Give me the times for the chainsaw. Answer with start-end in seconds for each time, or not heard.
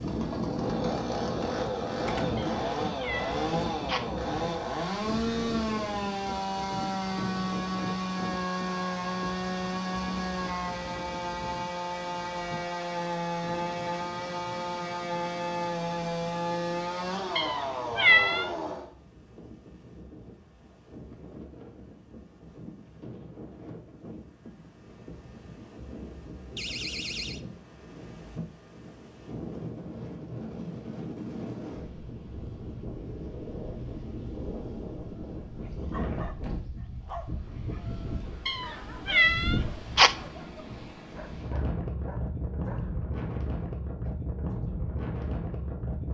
0.0-18.9.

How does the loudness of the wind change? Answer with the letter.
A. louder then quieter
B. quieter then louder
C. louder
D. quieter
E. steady
B.